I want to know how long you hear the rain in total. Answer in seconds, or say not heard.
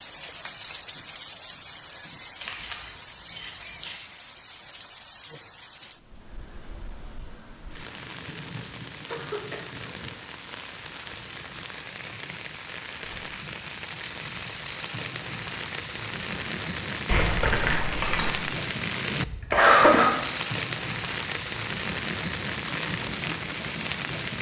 24 s.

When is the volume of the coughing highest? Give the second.
20 s.